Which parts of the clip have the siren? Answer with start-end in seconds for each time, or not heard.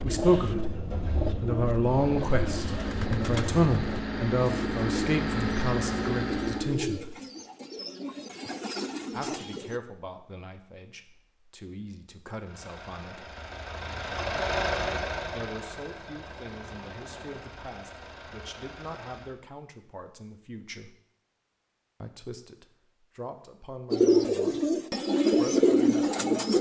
not heard.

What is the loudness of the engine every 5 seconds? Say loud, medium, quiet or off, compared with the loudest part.
medium, loud, loud, medium, off, off.